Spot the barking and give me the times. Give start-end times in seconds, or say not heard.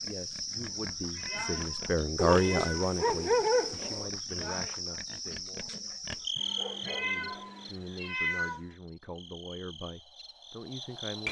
2.1-4.1, 6.3-7.7.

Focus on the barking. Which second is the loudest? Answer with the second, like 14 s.
3 s.